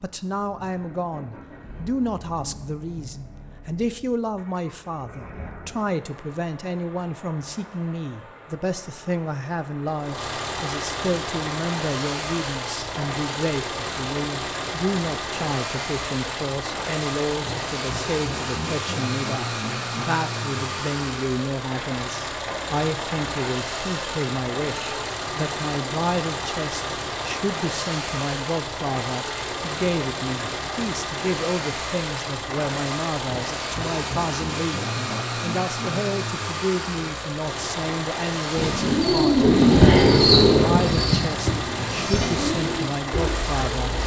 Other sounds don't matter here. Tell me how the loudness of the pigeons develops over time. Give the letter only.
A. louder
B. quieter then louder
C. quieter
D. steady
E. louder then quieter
C.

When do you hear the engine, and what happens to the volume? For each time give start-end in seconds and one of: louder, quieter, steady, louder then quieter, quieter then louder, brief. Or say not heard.
0.0-44.0 louder.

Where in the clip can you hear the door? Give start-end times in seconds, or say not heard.
39.8-41.0.